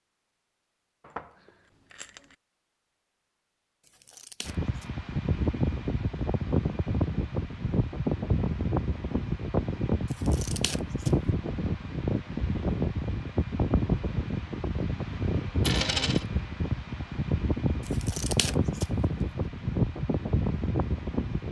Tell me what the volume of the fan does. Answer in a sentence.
The loudness of the fan stays about the same.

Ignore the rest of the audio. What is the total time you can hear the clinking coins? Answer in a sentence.
The clinking coins can be heard for 2 seconds in total.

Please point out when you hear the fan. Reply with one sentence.
The fan can be heard from 4.5 to 21.4 s.